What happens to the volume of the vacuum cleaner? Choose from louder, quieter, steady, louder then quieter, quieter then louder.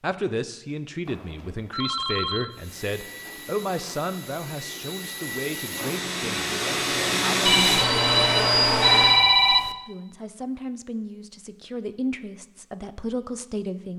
louder.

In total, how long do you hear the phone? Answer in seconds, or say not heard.
4 s.